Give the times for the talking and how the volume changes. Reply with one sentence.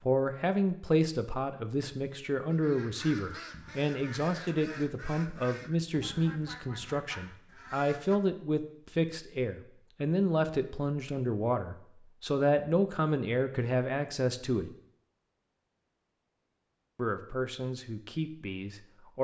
You can hear the talking from 0.0 to 14.7 s, at a steady volume; and briefly from 16.9 to 19.1 s.